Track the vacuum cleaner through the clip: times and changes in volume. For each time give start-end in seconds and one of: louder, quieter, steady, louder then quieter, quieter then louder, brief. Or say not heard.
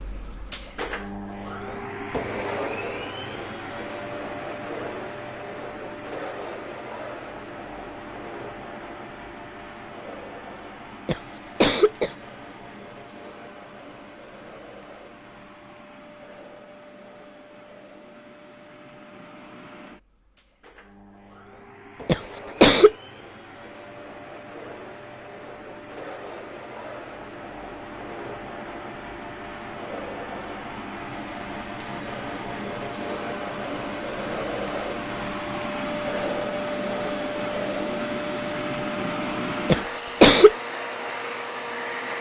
0.0-42.1 quieter then louder.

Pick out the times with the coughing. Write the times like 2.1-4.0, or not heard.
11.1-12.2, 22.1-22.9, 39.7-40.5.